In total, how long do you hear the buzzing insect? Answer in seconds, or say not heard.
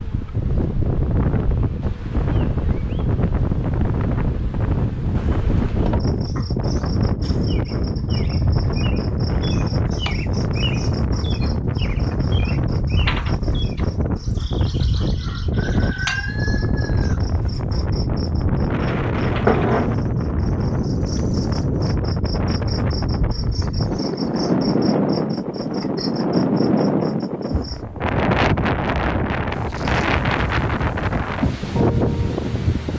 28 s.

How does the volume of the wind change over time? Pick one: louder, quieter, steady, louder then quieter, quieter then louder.
steady.